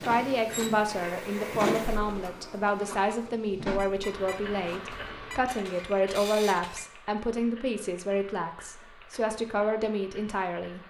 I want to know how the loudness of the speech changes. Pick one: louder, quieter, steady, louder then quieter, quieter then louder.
steady.